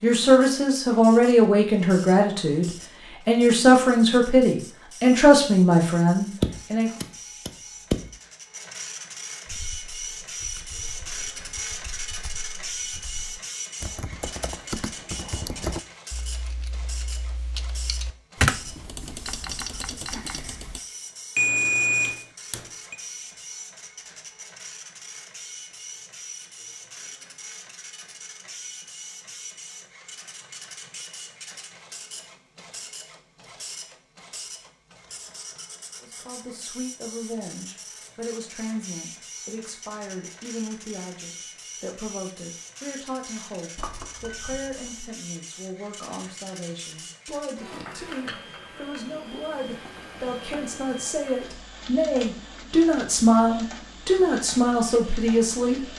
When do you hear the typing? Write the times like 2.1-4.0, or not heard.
9.4-20.8.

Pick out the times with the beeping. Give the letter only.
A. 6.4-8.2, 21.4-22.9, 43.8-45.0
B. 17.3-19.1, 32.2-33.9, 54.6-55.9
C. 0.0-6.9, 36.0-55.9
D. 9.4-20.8
A.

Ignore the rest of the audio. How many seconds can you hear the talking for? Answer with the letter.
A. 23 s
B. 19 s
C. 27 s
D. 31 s
C.